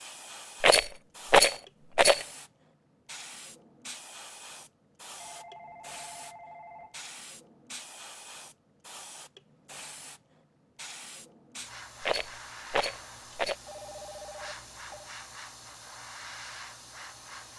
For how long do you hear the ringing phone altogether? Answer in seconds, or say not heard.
3 s.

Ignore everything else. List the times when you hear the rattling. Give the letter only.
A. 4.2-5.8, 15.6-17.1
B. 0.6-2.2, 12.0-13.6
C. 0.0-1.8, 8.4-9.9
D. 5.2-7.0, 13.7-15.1
B.